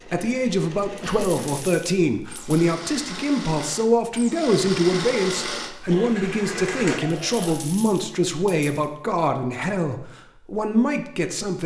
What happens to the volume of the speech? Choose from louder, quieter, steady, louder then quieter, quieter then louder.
steady.